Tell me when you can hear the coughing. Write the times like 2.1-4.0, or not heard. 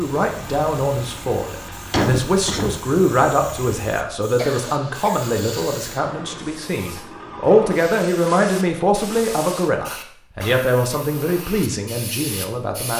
1.9-2.8, 4.3-5.2, 10.4-11.1.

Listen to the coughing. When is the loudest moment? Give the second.
2 s.